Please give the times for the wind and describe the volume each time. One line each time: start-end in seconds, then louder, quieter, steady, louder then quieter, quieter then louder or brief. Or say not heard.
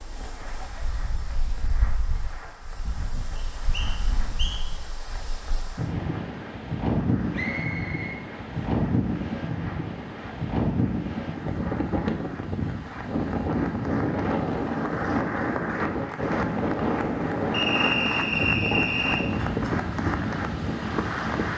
0.0-21.5 louder.